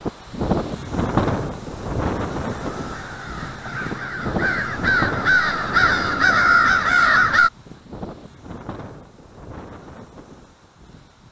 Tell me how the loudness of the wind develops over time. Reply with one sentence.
The loudness of the wind goes down.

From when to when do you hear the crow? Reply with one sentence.
You can hear the crow from 2.5 to 7.5 s.